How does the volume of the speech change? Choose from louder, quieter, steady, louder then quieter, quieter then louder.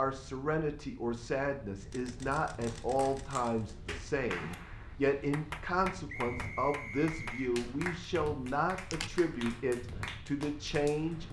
steady.